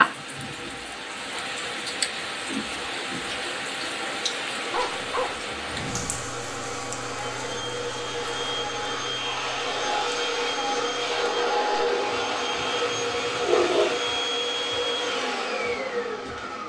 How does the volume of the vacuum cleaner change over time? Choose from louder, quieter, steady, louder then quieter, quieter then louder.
louder.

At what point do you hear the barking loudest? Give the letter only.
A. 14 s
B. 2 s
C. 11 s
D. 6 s
A.